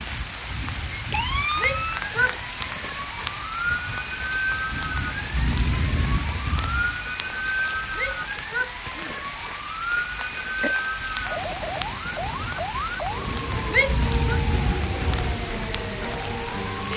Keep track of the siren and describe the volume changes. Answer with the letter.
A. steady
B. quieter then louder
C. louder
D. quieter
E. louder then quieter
A.